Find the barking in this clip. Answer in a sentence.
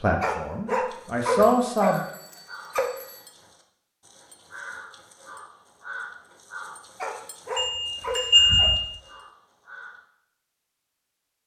You can hear the barking from 0.2 to 2.9 s and from 7.0 to 8.7 s.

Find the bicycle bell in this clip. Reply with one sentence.
You can hear the bicycle bell from 1.4 to 3.2 s and from 7.5 to 8.8 s.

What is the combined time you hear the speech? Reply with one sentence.
You can hear the speech for 2 seconds altogether.